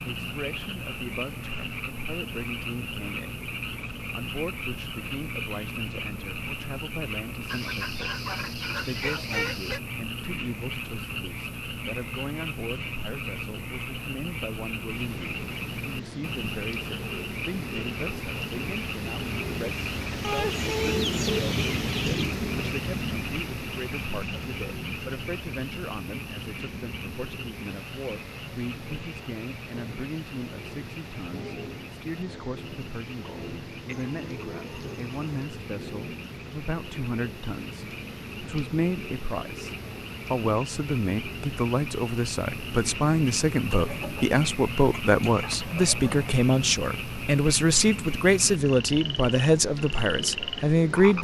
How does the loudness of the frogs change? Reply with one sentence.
The loudness of the frogs goes down, then up.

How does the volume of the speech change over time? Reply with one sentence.
The volume of the speech goes up.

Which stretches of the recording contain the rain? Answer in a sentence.
You can hear the rain from 14.8 to 51.1 s.